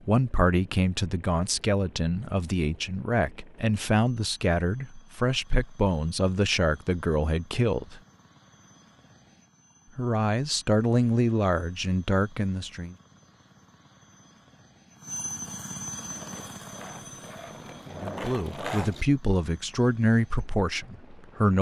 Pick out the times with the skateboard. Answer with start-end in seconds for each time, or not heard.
15.9-19.1.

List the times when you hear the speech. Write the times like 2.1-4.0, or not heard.
0.1-8.0, 9.9-12.9, 17.9-21.5.